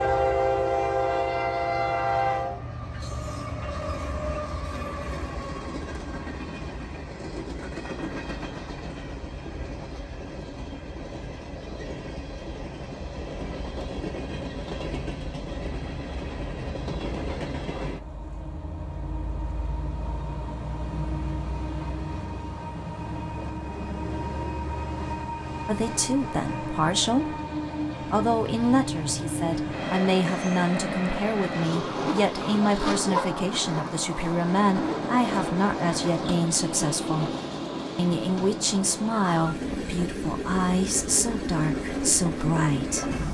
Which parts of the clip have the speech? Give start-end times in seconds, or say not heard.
25.6-27.4, 28.0-37.3, 38.0-43.1.